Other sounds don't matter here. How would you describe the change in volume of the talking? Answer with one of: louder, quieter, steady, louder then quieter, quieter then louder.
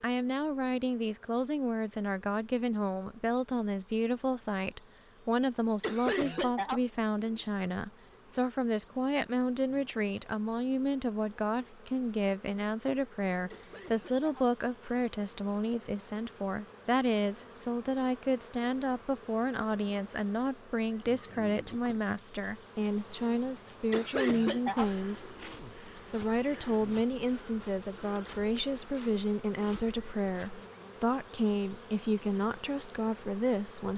steady.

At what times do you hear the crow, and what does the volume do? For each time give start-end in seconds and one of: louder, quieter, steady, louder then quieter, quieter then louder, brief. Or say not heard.
not heard.